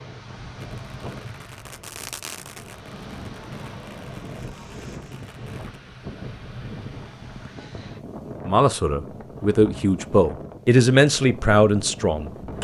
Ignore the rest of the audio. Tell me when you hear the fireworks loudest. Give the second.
2 s.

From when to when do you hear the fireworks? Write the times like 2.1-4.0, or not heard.
0.6-5.8.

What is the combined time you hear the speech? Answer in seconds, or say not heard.
4 s.